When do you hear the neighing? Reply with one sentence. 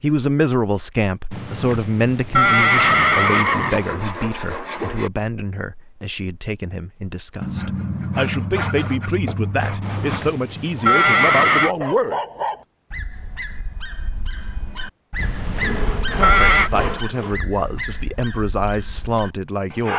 The neighing can be heard from 1.3 to 3.9 s, from 9.8 to 11.8 s and from 15.2 to 16.7 s.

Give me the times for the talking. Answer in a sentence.
You can hear the talking from 0.0 to 12.2 s and from 16.1 to 19.9 s.